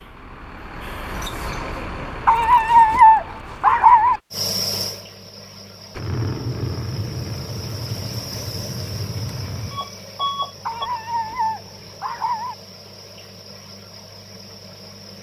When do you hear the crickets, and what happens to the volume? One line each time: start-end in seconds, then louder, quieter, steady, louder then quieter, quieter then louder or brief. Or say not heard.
4.3-15.1 quieter.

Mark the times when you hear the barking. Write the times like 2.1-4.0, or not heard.
2.2-4.2, 10.7-12.6.